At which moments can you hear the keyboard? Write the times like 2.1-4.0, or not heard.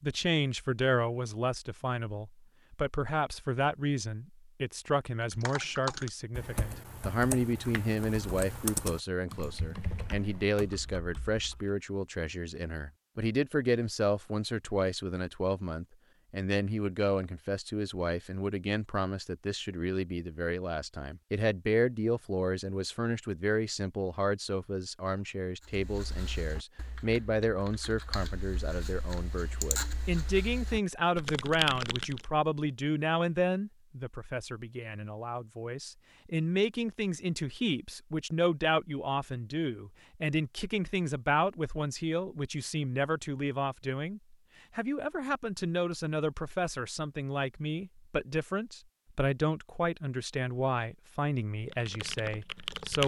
5.3-11.7, 25.6-32.2, 51.5-53.0.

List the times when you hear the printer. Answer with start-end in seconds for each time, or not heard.
not heard.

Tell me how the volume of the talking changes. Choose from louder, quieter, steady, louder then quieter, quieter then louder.
steady.